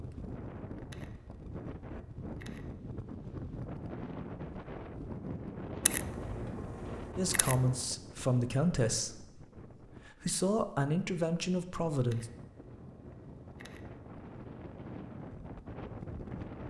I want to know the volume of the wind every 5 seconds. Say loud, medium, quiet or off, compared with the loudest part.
loud, loud, medium, loud.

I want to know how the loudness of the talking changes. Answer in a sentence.
The loudness of the talking goes down, then up.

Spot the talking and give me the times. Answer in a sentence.
You can hear the talking from 7.2 to 12.2 s.